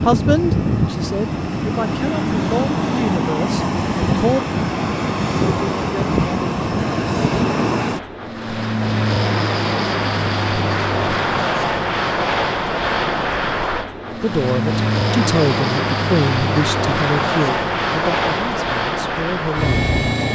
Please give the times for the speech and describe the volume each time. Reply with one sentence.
You can hear the speech from 0.1 to 4.4 s, at a steady volume; and from 14.1 to 19.9 s, getting quieter.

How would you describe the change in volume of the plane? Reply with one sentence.
The volume of the plane stays about the same.